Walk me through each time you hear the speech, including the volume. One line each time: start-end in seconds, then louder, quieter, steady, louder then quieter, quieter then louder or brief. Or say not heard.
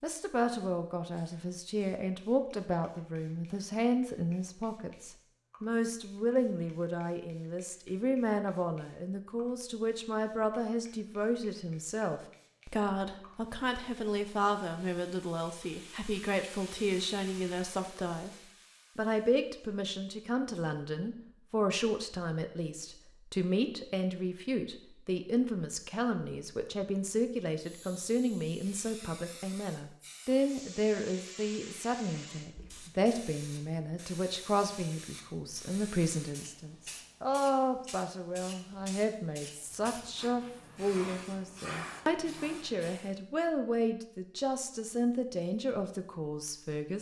0.0-18.3 steady
18.9-46.9 steady.